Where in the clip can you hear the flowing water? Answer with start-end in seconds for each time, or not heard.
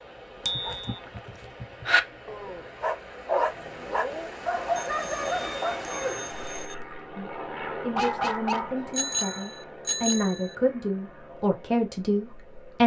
0.0-6.7.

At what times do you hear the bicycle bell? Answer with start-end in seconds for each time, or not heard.
0.5-0.9, 4.8-6.8, 8.9-10.6.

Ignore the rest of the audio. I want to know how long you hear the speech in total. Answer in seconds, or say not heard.
6 s.